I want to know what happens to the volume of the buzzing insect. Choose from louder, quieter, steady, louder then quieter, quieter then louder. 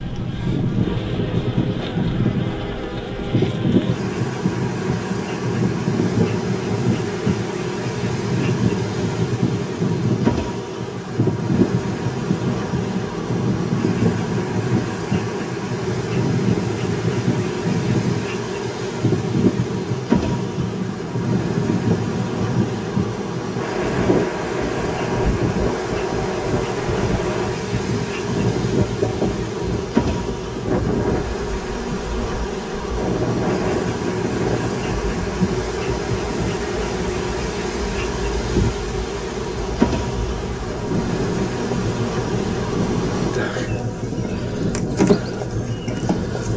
steady.